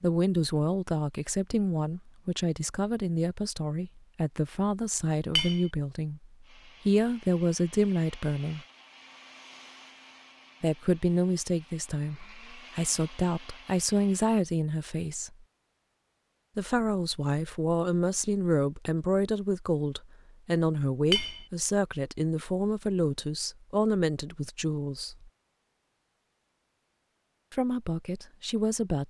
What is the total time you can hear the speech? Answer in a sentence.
You can hear the speech for 24 seconds altogether.